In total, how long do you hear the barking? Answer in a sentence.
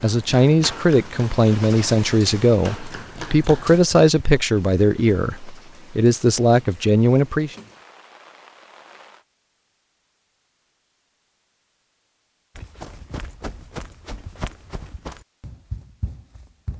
The barking can't be heard in this clip.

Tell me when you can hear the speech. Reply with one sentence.
The speech can be heard from 0.0 to 7.5 s.